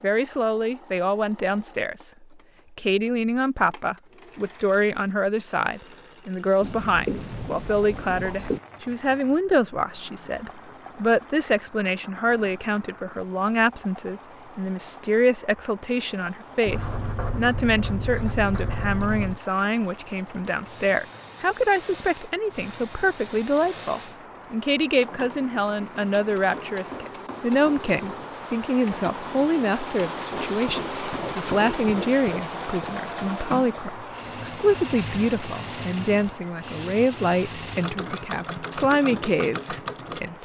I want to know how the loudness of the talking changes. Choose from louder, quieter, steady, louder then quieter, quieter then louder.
steady.